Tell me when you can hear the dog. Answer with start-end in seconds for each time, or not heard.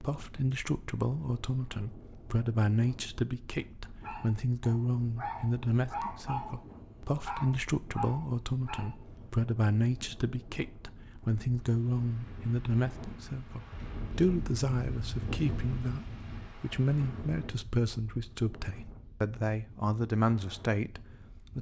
4.0-8.9.